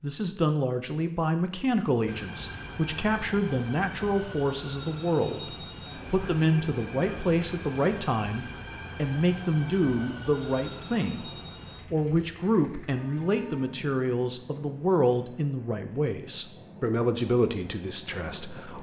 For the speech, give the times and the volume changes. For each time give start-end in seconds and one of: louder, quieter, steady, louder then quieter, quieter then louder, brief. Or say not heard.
0.0-18.7 steady.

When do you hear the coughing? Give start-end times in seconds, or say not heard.
not heard.